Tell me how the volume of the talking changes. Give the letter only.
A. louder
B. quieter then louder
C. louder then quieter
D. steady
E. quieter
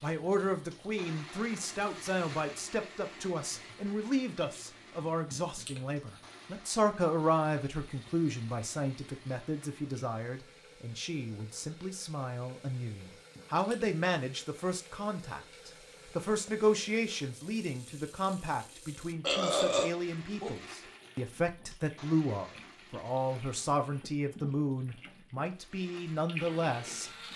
D.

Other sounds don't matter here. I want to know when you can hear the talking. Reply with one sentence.
The talking can be heard from 0.0 to 27.1 s.